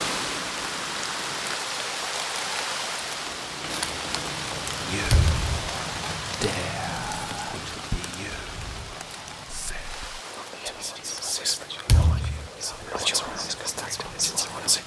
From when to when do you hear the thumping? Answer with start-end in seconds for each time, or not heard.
5.1-5.5, 11.8-12.4.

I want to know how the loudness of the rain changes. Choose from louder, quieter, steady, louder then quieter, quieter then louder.
quieter.